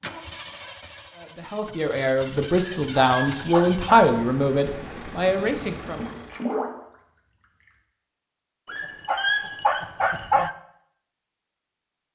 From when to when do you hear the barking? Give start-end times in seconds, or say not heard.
2.5-4.0, 8.7-10.6.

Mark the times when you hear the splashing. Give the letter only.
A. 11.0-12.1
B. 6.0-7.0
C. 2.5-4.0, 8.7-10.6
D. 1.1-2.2
B.